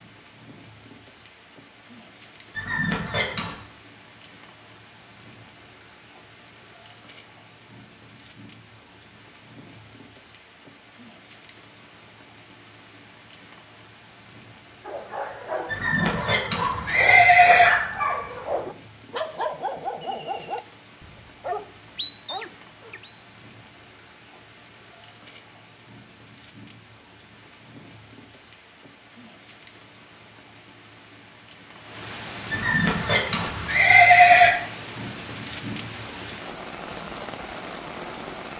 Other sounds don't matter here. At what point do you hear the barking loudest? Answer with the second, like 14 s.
18 s.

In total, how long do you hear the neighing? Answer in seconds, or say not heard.
5 s.